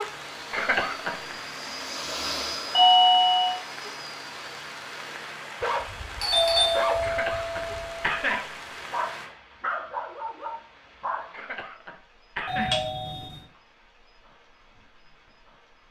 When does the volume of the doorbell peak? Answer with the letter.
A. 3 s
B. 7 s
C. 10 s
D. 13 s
A.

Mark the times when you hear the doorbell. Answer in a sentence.
You can hear the doorbell from 2.7 to 3.5 s, from 6.2 to 8.2 s and from 12.4 to 13.4 s.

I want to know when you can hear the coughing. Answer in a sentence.
The coughing can be heard from 0.5 to 1.4 s, from 7.0 to 8.6 s and from 11.3 to 12.9 s.